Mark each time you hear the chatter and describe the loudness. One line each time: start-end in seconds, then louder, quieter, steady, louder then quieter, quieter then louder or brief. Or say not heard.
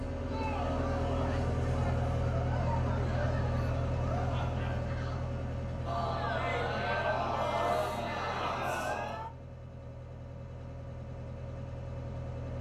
0.1-9.3 louder.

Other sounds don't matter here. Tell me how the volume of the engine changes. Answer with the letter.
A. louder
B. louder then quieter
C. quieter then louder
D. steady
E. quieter
E.